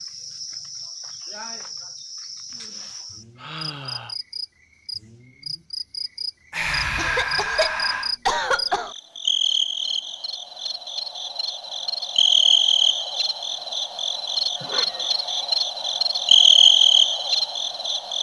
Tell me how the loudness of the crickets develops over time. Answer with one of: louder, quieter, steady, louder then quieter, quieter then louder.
louder.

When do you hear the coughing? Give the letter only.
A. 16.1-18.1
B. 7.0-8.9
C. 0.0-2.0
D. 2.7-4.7
B.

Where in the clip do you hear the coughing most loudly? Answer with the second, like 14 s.
8 s.